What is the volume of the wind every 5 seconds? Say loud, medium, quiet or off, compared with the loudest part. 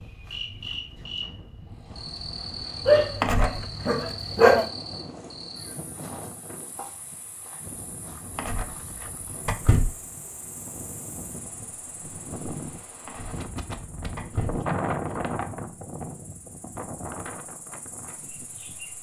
medium, medium, loud, loud.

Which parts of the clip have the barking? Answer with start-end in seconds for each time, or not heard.
2.9-4.7.